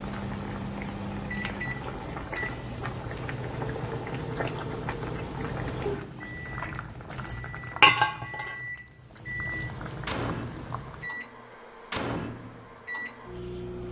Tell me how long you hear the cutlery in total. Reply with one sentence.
The cutlery can't be heard in this clip.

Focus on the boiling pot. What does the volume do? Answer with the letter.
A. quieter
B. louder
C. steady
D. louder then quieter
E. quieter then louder
D.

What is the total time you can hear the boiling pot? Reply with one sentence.
You can hear the boiling pot for 11 seconds altogether.